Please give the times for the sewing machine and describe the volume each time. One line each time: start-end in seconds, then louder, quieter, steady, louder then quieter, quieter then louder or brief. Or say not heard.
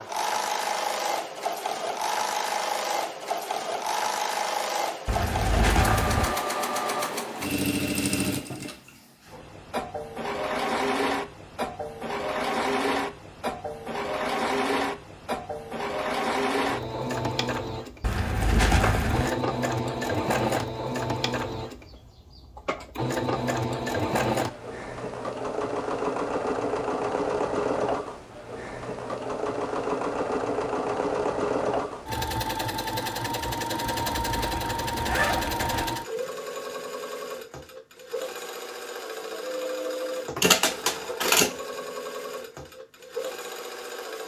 0.0-44.2 steady.